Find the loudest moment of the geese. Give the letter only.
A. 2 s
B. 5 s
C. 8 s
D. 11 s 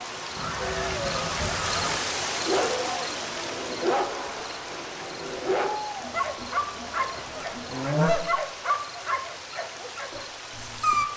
C.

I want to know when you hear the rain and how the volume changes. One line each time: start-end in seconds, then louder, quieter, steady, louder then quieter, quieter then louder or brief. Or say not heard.
0.0-11.1 quieter.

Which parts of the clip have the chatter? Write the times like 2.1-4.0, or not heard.
0.0-8.4.